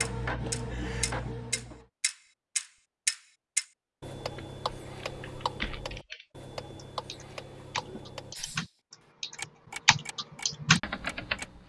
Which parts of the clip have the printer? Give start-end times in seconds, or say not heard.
0.0-1.9.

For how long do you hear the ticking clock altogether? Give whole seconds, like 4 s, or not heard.
11 s.